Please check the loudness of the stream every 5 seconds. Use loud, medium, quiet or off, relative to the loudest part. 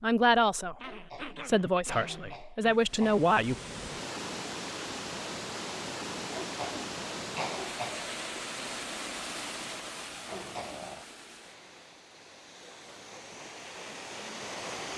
loud, loud, medium.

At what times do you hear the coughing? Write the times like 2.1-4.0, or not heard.
0.8-3.2, 6.3-8.1, 10.2-10.8.